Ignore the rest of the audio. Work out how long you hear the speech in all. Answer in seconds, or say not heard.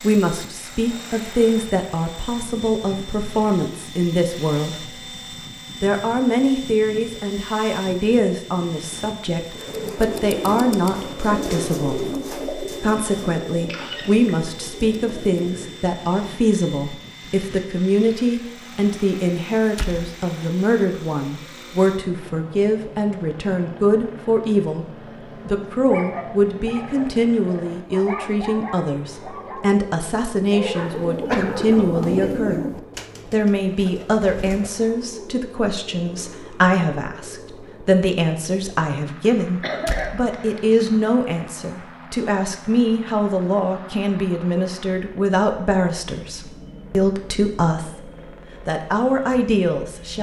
49 s.